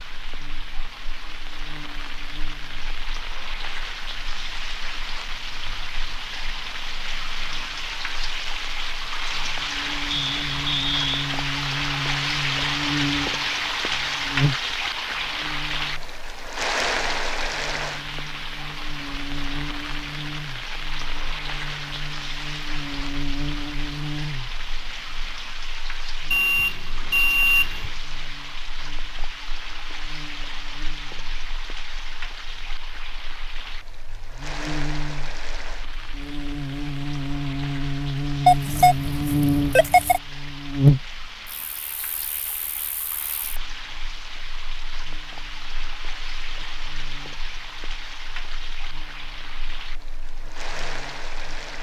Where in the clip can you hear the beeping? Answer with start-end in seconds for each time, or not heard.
10.1-11.1, 26.3-27.9, 38.5-40.2.